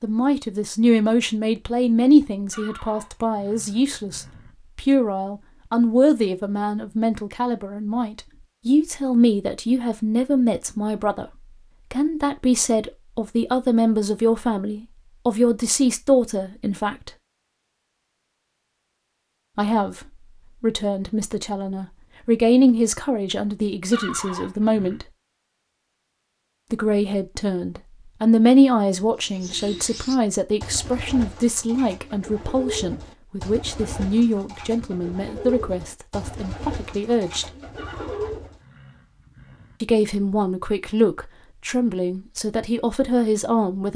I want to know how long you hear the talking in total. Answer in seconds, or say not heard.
37 s.